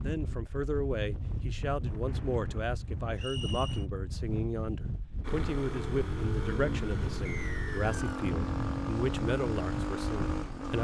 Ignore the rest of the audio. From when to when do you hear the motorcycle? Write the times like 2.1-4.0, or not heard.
5.2-10.7.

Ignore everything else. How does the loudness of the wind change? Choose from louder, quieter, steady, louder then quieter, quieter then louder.
steady.